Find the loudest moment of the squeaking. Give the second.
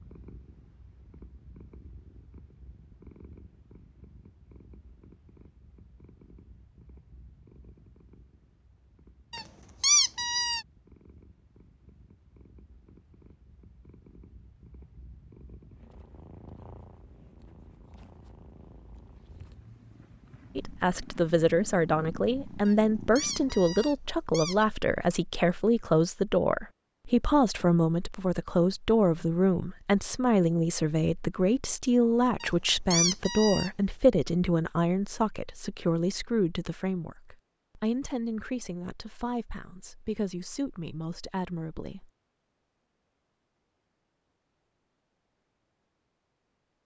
10 s.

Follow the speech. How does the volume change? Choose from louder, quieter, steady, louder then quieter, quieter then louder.
quieter.